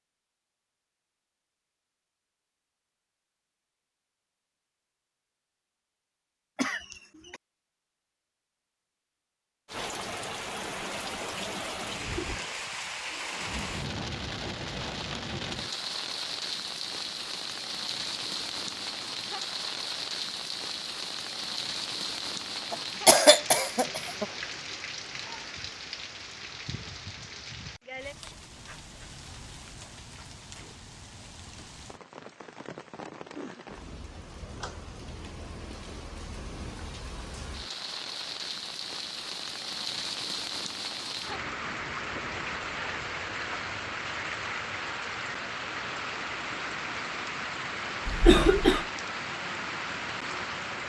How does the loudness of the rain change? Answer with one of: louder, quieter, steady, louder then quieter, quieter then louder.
quieter then louder.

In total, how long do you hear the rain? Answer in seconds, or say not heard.
41 s.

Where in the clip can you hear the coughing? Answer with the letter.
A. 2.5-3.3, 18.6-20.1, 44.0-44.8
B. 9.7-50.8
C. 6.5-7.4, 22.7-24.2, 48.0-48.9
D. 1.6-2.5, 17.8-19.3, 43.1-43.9
C.